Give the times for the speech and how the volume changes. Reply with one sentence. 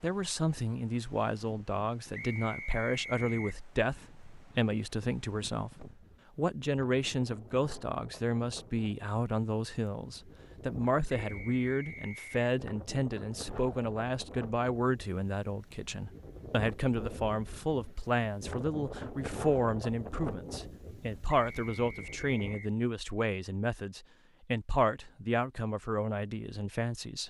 You can hear the speech from 0.0 to 27.2 s, at a steady volume.